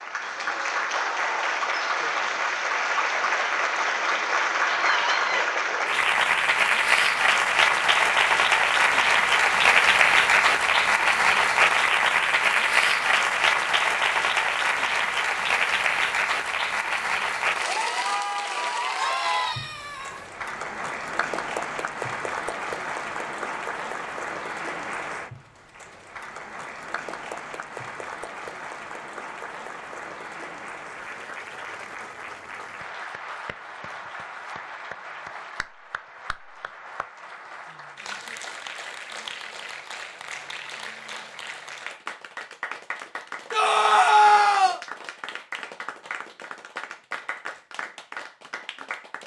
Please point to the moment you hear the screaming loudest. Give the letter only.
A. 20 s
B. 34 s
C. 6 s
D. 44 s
D.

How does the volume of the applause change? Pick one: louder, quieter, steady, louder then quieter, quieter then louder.
quieter.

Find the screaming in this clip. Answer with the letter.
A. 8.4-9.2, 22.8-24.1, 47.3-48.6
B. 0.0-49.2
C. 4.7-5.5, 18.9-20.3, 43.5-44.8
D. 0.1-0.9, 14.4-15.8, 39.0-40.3
C.